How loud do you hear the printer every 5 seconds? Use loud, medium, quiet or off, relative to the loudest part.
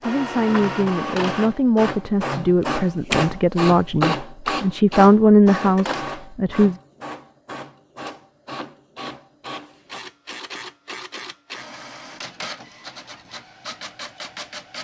loud, medium, medium.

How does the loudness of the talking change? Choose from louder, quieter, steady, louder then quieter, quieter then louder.
louder.